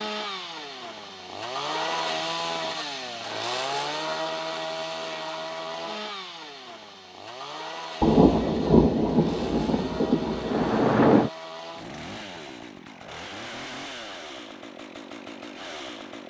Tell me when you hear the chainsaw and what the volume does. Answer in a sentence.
The chainsaw can be heard from 0.0 to 16.2 s, getting quieter.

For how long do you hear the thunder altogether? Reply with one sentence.
You can hear the thunder for 3 seconds altogether.